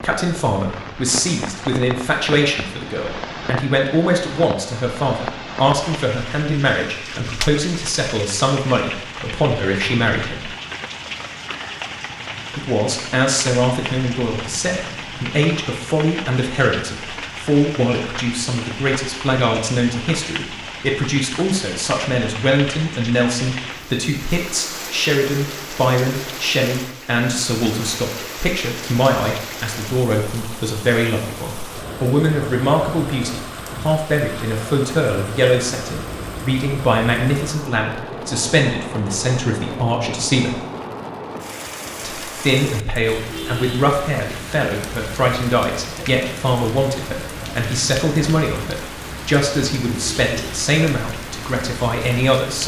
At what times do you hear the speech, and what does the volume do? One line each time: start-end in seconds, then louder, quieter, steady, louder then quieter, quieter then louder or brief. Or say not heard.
0.0-10.4 steady
12.6-40.5 steady
42.0-52.6 steady.